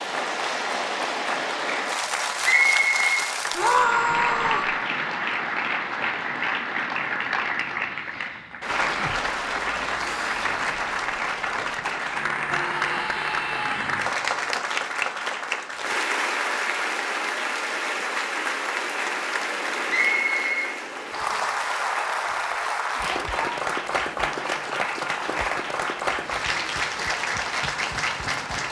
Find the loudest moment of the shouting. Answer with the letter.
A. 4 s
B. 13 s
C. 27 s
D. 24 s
A.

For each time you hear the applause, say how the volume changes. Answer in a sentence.
The applause can be heard from 0.0 to 28.6 s, at a steady volume.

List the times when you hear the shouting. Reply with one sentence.
You can hear the shouting from 3.5 to 4.7 s, from 12.5 to 14.1 s and from 22.9 to 23.6 s.